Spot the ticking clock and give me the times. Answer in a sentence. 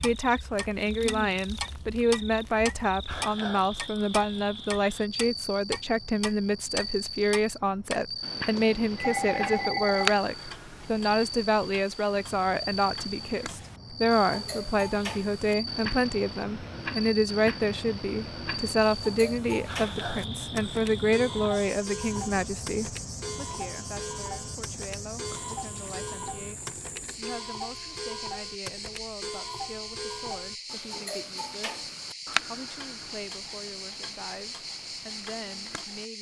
The ticking clock can be heard from 0.0 to 36.0 s.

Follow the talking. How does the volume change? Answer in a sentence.
The volume of the talking goes down.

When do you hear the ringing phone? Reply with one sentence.
The ringing phone can be heard from 8.6 to 10.2 s.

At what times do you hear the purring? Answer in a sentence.
The purring can't be heard in this clip.